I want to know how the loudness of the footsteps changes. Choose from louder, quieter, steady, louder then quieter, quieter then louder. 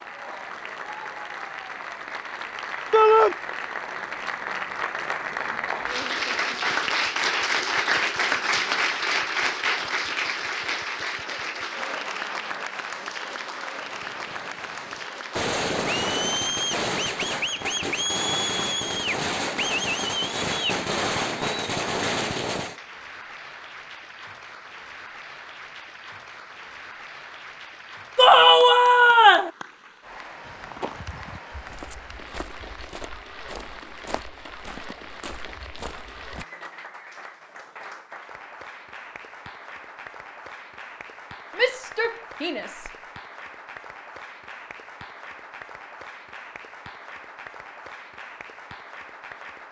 steady.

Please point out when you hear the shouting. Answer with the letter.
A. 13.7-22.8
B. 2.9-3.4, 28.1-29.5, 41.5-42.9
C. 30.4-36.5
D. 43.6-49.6
B.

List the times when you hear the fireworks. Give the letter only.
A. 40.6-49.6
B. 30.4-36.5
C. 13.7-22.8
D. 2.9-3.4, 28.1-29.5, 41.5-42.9
C.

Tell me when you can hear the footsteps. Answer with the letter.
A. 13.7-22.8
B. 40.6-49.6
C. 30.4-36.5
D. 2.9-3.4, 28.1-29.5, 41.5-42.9
C.